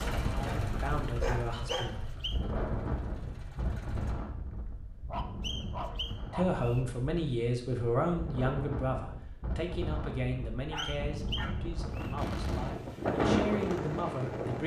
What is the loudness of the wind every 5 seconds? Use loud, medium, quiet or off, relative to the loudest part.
medium, medium, loud.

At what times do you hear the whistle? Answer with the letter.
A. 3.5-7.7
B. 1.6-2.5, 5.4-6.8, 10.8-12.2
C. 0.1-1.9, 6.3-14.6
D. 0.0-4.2
B.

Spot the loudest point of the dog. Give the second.
1 s.